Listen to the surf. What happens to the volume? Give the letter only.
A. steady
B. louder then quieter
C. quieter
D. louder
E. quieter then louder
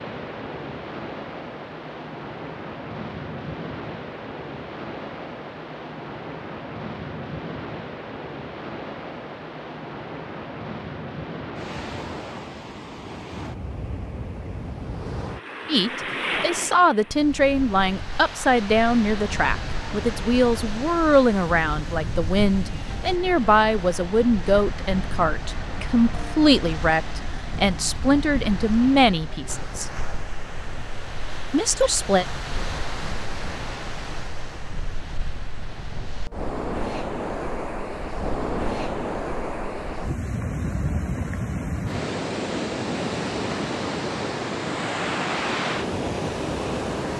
D.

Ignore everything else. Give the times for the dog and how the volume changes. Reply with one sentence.
You can't hear the dog here.